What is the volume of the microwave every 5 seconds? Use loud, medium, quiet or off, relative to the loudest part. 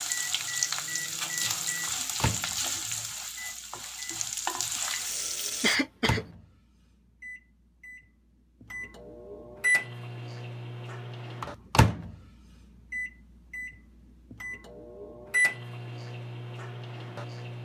medium, loud, loud, loud.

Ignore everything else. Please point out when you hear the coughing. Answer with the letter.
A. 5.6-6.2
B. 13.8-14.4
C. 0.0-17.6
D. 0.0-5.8
A.